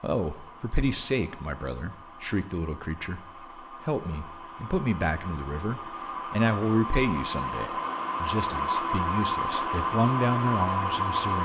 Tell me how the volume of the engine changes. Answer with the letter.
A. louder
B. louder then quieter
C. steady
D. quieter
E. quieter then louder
A.